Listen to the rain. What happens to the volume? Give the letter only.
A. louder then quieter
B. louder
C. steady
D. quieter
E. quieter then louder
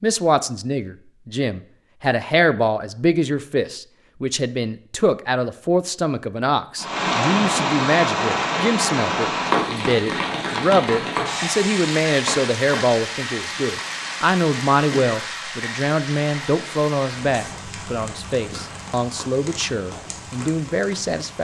D.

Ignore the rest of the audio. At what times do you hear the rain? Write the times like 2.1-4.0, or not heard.
6.8-21.3.